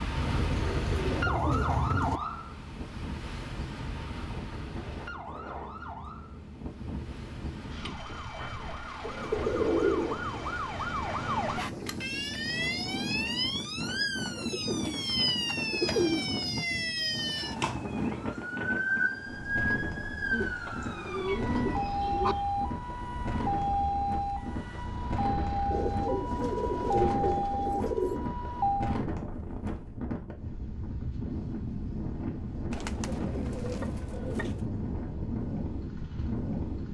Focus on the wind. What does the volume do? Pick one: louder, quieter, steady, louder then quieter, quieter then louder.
louder.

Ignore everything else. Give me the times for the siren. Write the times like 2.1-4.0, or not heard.
0.0-29.0.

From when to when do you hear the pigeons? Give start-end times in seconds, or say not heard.
0.1-2.2, 9.0-10.6, 14.3-16.3, 20.3-22.4, 25.7-28.3, 32.7-34.6.